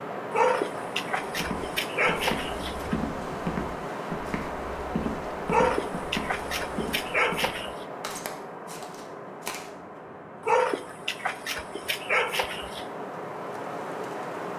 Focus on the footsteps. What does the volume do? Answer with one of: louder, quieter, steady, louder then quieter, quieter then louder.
quieter.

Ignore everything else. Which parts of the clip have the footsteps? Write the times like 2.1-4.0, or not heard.
1.3-9.7.